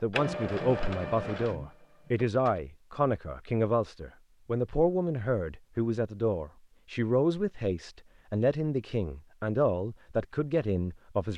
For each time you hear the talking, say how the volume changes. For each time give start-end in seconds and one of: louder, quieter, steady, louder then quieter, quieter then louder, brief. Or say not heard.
0.0-11.3 steady.